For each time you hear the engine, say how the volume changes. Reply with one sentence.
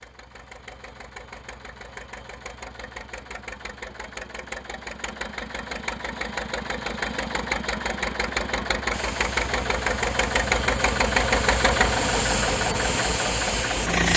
You can hear the engine from 0.0 to 14.1 s, getting louder.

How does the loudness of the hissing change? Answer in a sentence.
The volume of the hissing goes up.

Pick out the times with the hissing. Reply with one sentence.
You can hear the hissing from 8.9 to 14.1 s.